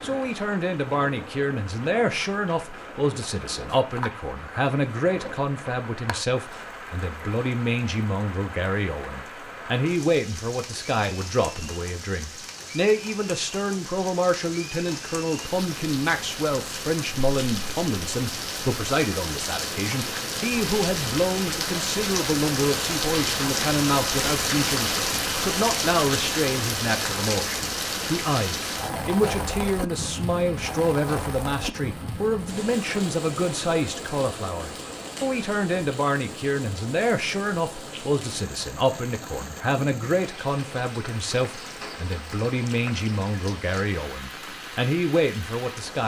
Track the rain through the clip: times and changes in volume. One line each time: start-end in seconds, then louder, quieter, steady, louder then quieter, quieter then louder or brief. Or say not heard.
0.0-46.0 louder then quieter.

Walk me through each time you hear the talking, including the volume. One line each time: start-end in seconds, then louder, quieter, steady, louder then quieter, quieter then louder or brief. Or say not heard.
0.0-46.0 steady.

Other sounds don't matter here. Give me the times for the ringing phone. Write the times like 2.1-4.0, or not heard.
not heard.